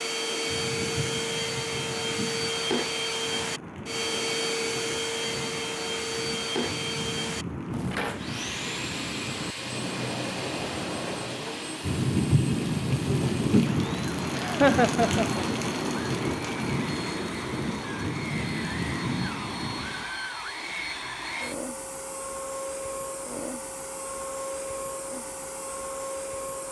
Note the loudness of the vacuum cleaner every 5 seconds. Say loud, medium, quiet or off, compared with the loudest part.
loud, loud, medium, medium, medium, medium.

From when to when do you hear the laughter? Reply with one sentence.
The laughter can be heard from 14.3 to 15.4 s.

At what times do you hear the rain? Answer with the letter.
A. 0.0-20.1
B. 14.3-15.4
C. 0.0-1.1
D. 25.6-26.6
A.